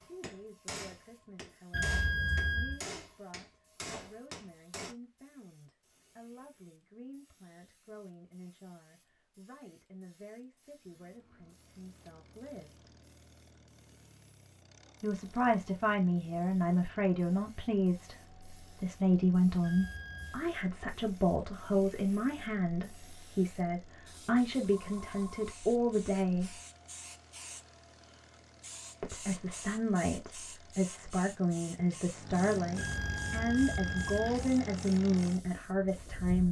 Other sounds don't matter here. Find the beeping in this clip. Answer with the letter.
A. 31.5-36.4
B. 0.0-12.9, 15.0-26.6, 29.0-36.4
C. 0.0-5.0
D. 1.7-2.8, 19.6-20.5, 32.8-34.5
D.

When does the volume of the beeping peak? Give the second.
2 s.